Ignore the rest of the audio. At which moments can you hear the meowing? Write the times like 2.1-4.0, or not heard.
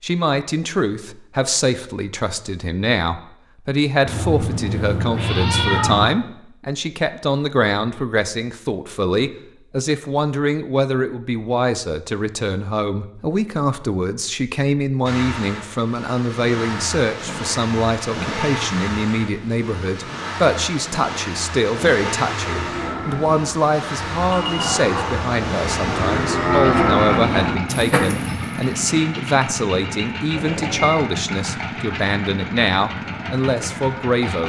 4.0-6.0, 30.3-31.0.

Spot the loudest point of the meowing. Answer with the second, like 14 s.
6 s.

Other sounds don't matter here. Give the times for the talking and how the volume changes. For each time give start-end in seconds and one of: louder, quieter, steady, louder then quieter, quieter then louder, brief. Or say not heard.
0.0-34.4 steady.